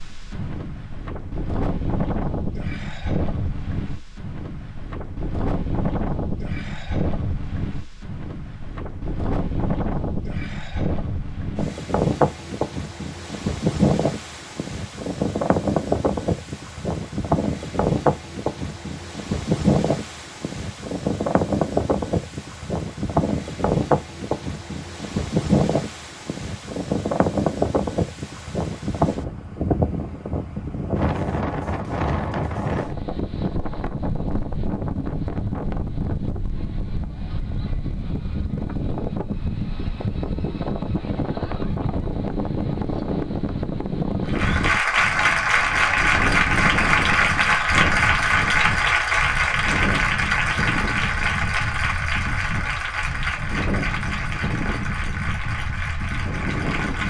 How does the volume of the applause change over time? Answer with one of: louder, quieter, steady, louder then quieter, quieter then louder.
quieter.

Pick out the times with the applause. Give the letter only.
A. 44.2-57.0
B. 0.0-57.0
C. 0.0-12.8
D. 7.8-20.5
A.